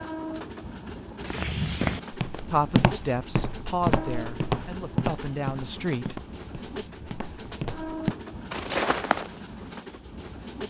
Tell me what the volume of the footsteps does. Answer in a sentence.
The loudness of the footsteps goes down, then up.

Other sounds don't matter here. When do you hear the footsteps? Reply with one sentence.
The footsteps can be heard from 1.2 to 9.3 s.